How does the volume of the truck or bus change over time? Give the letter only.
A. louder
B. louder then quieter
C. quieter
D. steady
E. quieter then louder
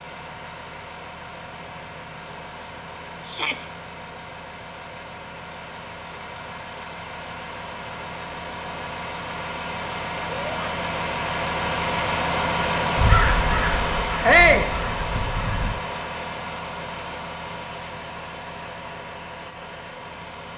B.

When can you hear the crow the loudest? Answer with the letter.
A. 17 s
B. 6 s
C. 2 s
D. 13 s
D.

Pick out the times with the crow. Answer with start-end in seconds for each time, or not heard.
12.9-15.7.